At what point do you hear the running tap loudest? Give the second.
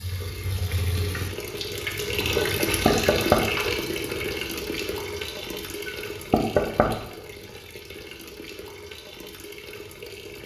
3 s.